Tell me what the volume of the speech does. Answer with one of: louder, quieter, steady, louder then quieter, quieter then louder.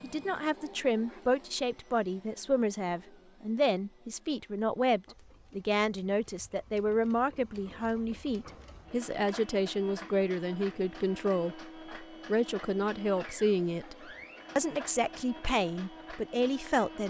steady.